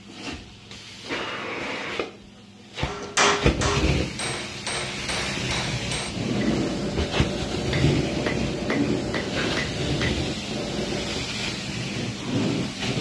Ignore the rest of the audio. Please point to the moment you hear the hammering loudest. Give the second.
3 s.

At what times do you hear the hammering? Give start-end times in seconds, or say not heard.
2.9-11.2.